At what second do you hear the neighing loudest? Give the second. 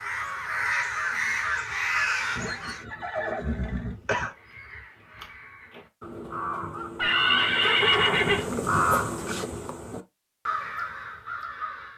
8 s.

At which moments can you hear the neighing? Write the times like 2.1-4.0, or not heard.
2.4-4.3, 7.0-8.4.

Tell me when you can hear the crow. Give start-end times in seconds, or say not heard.
0.0-2.9, 4.2-11.9.